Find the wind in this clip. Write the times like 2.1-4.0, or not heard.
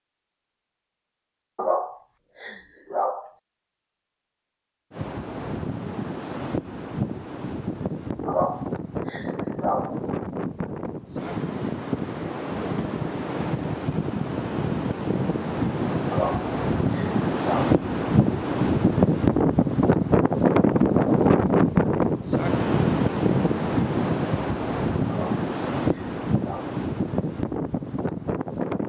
4.9-28.8.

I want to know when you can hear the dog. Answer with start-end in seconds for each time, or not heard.
1.6-3.3, 8.2-10.0, 16.1-17.8, 25.1-26.8.